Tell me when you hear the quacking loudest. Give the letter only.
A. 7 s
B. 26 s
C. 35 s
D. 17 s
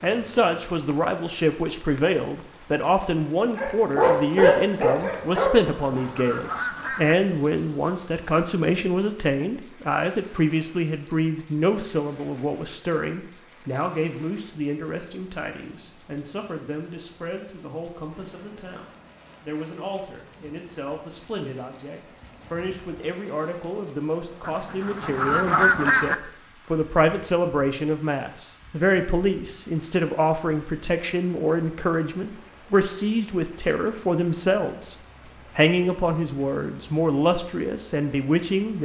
B.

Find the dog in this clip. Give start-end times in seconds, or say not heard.
3.5-6.0.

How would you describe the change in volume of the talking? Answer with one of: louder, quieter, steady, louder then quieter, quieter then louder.
quieter then louder.